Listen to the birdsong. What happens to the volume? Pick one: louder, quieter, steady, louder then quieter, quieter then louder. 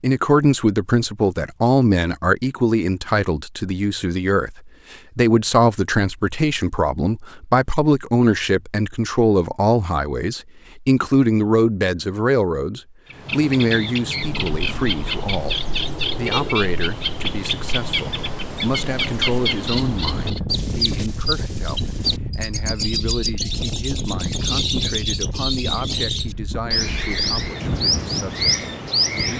steady.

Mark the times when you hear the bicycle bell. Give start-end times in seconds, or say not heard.
not heard.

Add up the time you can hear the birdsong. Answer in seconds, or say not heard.
16 s.